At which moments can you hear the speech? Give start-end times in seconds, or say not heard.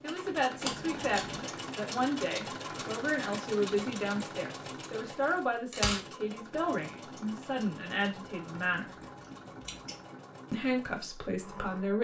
0.0-8.8, 10.5-11.9.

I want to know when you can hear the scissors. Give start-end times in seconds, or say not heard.
0.6-1.4, 5.3-6.0, 8.5-10.0.